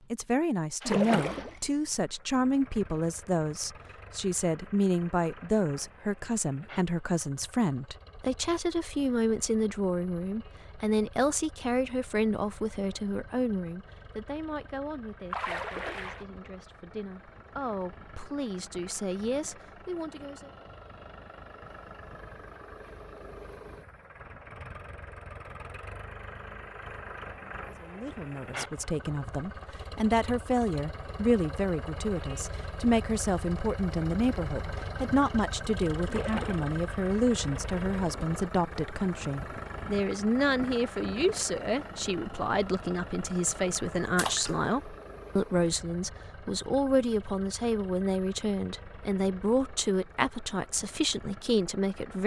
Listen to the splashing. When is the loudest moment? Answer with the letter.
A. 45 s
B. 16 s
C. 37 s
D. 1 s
D.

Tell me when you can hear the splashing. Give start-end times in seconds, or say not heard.
0.8-1.6, 15.3-16.2, 36.0-36.8, 44.1-44.6.